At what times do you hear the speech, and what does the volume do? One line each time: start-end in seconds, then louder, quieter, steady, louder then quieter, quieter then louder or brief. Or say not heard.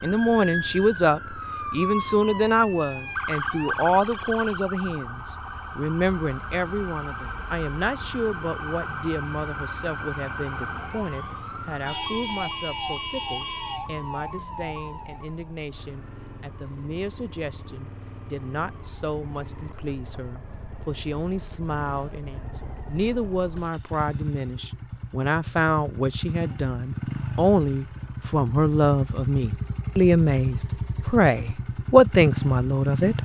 0.0-33.1 quieter then louder.